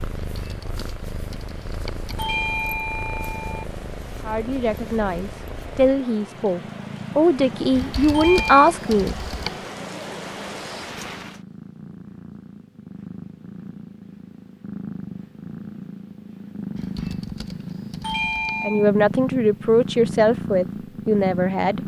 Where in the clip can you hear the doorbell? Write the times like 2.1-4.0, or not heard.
2.1-3.6, 8.1-8.7, 18.0-18.9.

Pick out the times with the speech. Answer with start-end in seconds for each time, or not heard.
4.2-9.2, 18.6-21.8.